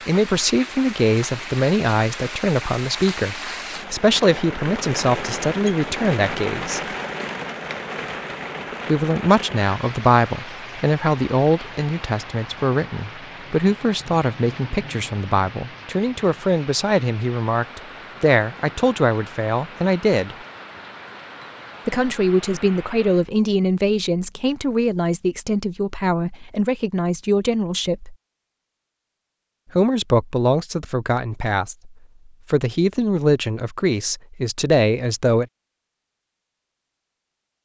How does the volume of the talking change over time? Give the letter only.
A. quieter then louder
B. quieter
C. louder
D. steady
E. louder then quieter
D.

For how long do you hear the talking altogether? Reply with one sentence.
The talking can be heard for 30 seconds in total.